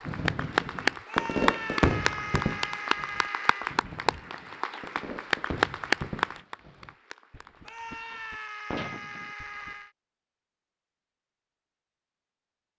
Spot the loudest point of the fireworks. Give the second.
2 s.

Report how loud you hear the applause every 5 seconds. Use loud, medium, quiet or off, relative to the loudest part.
loud, loud, off.